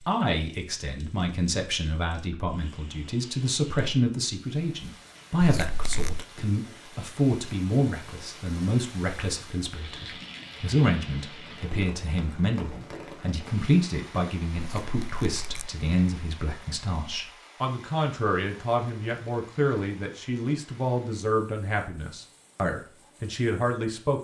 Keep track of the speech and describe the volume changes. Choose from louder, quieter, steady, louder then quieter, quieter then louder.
steady.